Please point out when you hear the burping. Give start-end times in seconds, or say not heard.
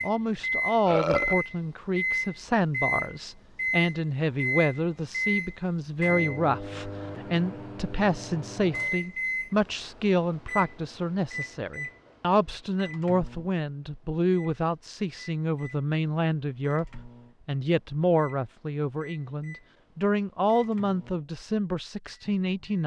0.8-1.4.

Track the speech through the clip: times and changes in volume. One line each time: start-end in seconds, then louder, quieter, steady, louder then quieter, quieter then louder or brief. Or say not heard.
0.0-22.8 steady.